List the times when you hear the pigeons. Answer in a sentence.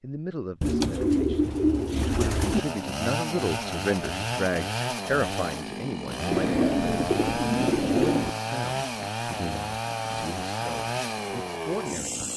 The pigeons can be heard from 0.6 to 2.6 s and from 6.3 to 8.3 s.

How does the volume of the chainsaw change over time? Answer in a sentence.
The volume of the chainsaw stays about the same.